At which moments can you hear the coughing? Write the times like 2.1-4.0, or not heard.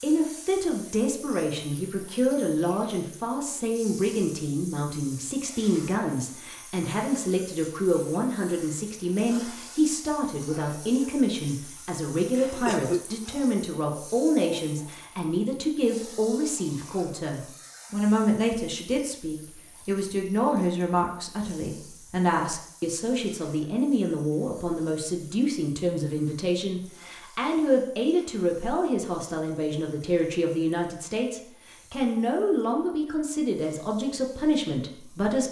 12.5-13.3.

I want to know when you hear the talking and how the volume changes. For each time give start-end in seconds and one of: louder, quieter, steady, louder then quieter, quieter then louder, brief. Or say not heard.
0.0-35.4 steady.